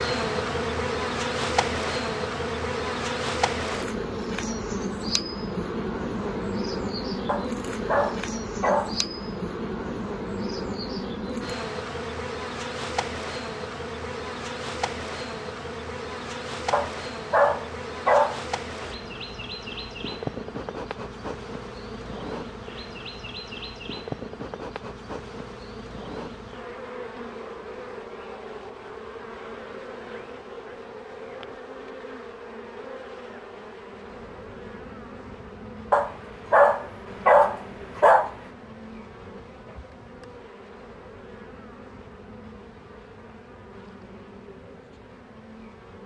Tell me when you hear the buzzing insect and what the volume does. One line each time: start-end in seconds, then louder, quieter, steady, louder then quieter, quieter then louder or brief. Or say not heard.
0.0-46.0 quieter.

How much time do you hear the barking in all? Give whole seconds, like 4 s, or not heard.
6 s.